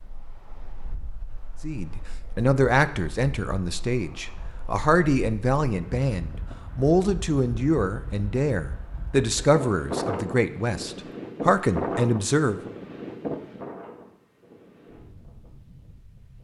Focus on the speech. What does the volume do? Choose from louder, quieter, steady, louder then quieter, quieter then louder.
steady.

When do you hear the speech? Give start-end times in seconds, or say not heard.
1.6-12.6.